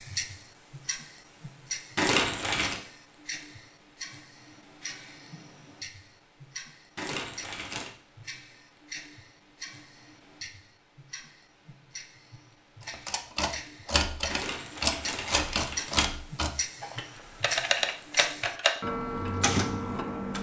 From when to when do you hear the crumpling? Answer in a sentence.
The crumpling can be heard from 1.9 to 2.8 s, from 7.0 to 7.9 s and from 14.3 to 16.1 s.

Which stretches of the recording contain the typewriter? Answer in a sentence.
The typewriter can be heard from 12.8 to 20.3 s.